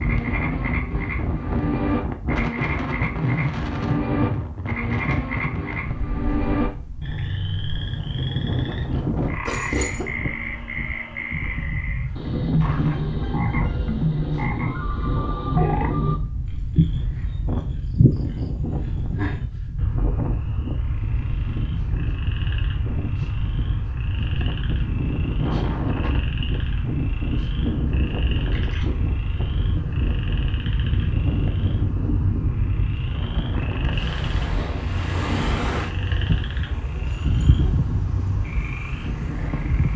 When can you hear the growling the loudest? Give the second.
10 s.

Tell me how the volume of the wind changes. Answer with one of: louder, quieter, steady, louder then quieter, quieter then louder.
steady.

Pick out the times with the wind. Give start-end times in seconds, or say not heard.
0.0-39.9.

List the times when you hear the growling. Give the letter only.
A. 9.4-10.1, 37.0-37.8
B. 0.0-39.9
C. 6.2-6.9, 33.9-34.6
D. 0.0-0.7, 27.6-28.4
A.